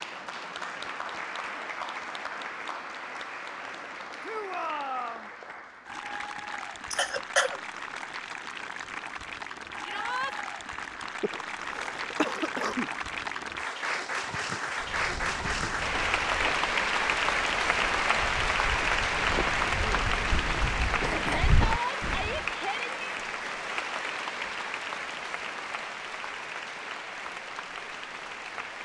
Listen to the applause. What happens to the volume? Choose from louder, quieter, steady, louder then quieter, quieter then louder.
louder then quieter.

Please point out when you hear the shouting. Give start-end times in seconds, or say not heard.
4.2-5.3, 9.8-10.3, 21.2-23.1.